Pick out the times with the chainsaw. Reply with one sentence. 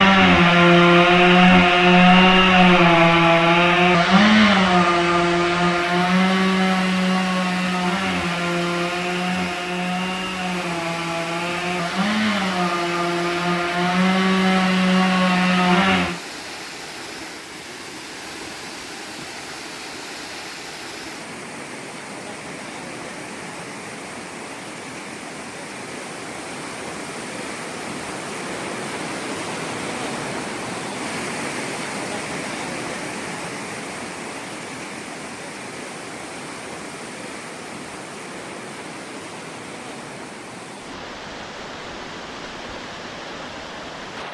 The chainsaw can be heard from 0.0 to 16.2 s.